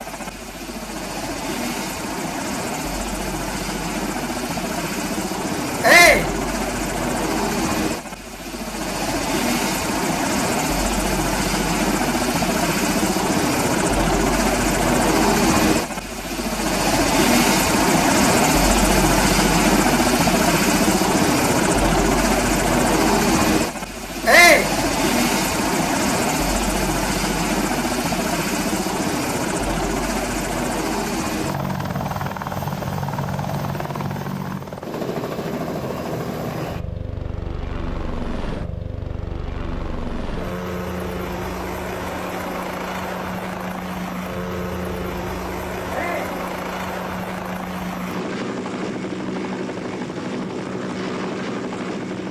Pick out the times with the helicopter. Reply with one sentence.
You can hear the helicopter from 0.0 to 52.2 s.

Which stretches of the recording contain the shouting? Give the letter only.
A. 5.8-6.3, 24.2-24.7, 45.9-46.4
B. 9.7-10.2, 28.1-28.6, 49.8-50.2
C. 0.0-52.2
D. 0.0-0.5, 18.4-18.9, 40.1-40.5
A.